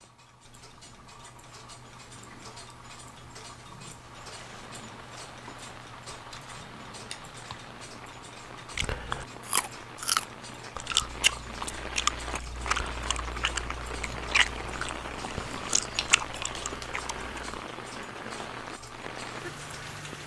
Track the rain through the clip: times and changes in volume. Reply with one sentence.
You can hear the rain from 4.0 to 20.2 s, getting louder.